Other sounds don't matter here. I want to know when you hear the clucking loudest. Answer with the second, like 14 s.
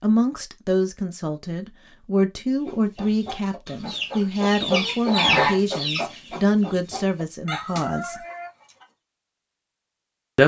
5 s.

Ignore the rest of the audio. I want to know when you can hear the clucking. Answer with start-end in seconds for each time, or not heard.
2.6-8.8.